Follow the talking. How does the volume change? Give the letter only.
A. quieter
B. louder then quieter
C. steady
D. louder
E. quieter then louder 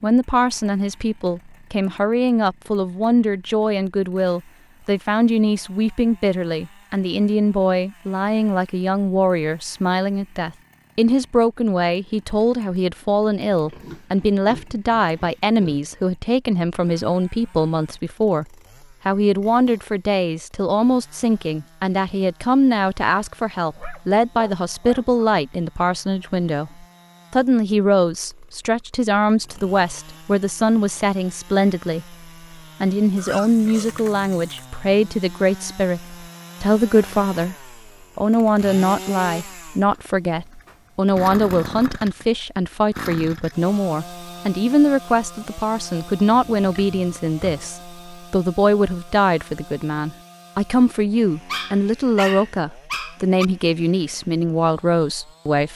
C.